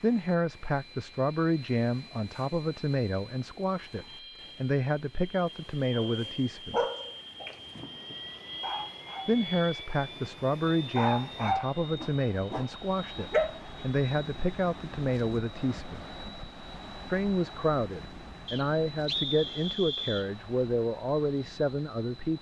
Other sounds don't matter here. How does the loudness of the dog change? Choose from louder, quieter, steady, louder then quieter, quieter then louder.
quieter then louder.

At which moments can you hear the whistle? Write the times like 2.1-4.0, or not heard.
18.4-20.3.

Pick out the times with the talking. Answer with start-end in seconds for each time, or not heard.
0.0-6.8, 9.2-16.1, 17.1-22.3.